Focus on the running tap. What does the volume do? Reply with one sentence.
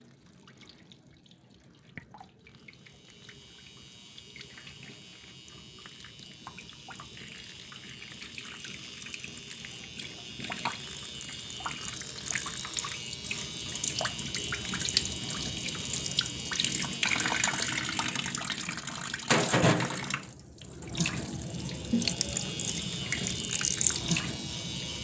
The volume of the running tap goes up.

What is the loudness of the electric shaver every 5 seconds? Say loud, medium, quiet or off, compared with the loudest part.
quiet, medium, loud, loud, loud.